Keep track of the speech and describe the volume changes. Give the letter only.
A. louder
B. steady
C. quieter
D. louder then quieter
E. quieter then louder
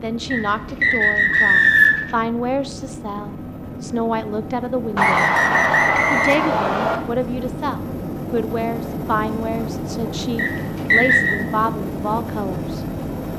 B.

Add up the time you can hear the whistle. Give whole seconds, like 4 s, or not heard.
5 s.